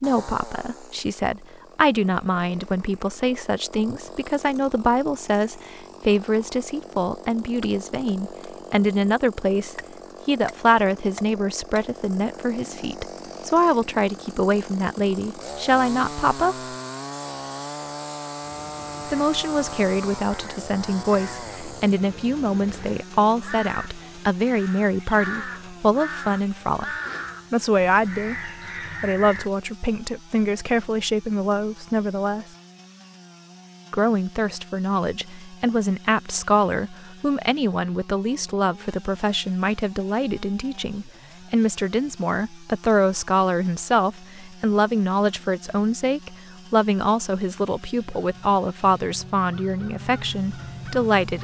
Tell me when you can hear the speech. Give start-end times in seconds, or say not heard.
0.0-16.8, 19.1-32.5, 33.9-51.3.